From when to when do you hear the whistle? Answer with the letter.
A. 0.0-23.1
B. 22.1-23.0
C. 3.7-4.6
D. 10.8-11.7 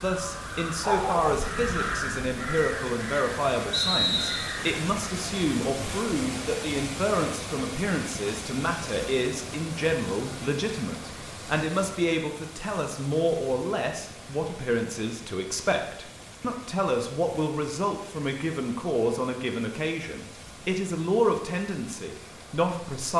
C.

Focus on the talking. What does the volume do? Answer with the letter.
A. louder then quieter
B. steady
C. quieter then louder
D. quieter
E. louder
B.